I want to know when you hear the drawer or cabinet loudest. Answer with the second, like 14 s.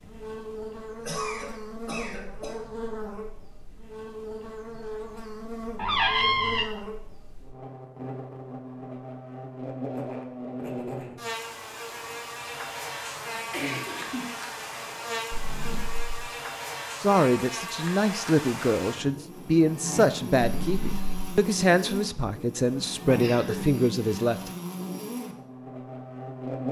6 s.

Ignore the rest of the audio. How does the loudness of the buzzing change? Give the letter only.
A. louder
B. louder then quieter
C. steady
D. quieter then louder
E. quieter
C.